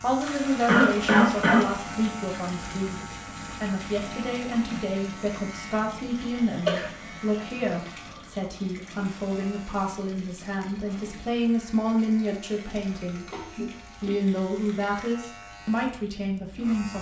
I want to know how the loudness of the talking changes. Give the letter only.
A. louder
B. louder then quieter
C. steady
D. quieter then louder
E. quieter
C.